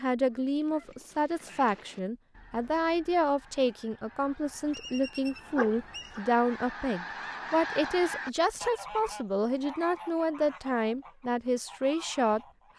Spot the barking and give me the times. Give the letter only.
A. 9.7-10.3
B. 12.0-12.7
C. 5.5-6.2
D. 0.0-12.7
C.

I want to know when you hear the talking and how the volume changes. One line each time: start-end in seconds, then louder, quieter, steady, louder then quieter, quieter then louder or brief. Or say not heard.
0.0-12.7 steady.